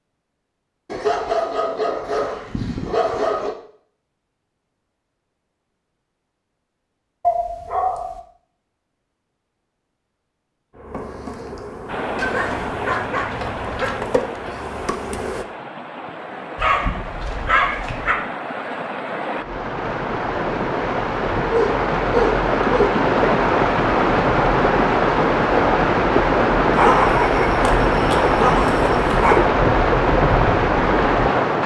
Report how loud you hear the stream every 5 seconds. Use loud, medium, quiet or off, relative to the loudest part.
off, off, quiet, quiet, loud, loud, loud.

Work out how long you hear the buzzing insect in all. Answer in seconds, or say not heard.
5 s.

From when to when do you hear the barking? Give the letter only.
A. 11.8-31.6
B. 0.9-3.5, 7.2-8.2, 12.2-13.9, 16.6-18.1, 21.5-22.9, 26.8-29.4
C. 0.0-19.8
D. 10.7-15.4
B.